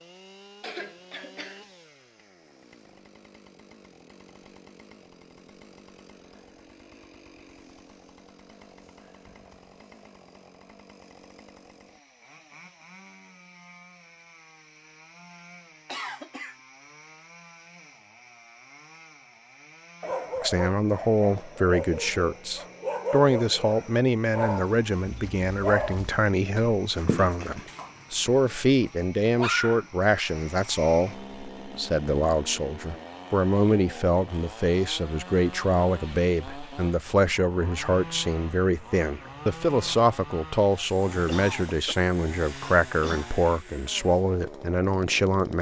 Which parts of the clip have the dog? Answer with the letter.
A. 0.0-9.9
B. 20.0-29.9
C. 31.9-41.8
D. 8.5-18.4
B.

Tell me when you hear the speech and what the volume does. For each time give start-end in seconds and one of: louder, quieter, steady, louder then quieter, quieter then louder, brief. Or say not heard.
20.4-45.5 steady.